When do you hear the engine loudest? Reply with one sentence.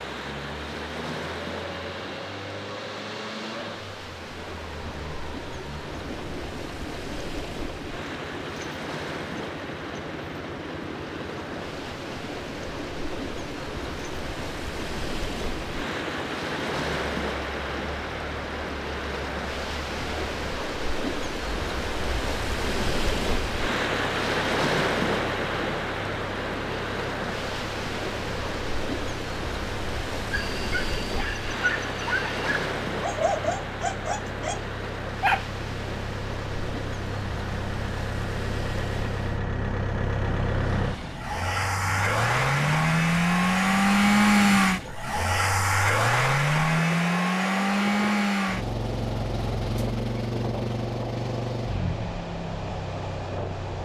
The loudest moment of the engine is at 44 seconds.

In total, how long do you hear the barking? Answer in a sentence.
The barking can be heard for 5 seconds in total.